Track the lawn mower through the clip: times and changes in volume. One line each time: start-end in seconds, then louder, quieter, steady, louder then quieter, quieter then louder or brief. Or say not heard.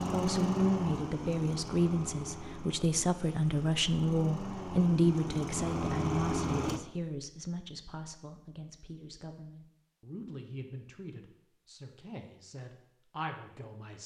0.0-6.8 quieter then louder.